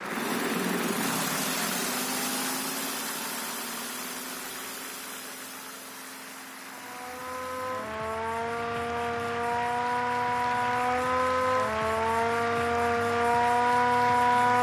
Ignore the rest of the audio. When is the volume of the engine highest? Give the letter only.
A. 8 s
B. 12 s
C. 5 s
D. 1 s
D.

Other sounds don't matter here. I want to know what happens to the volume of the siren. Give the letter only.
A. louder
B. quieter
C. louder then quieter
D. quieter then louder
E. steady
A.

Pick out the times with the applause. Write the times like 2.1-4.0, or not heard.
0.0-14.5.